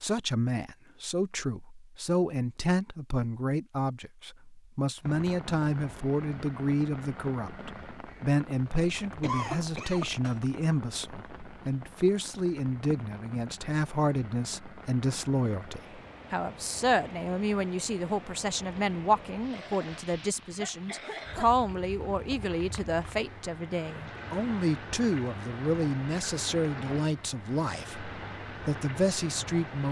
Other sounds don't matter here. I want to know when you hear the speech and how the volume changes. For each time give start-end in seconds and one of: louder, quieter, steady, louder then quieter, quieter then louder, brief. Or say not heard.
0.0-29.8 steady.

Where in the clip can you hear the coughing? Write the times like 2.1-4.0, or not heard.
9.2-10.4, 19.5-21.5.